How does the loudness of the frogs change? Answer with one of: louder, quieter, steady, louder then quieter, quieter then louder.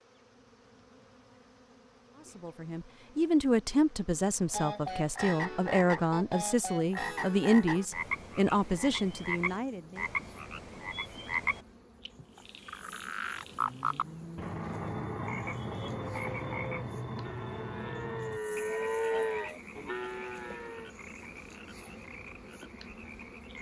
quieter.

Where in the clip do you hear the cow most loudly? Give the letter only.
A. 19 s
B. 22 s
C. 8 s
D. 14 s
A.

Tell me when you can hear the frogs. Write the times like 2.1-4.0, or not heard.
4.5-23.5.